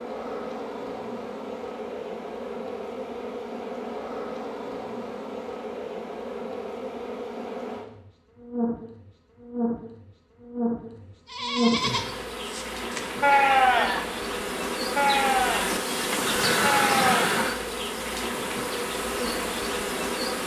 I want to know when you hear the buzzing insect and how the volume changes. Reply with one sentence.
You can hear the buzzing insect from 0.0 to 20.4 s, getting louder.